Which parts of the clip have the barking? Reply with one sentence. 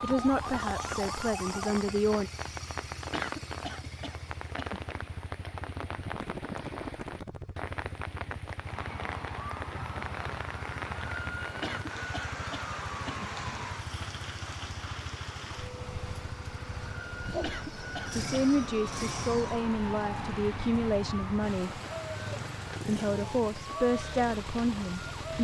The barking can't be heard in this clip.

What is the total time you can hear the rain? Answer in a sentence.
You can hear the rain for 25 seconds altogether.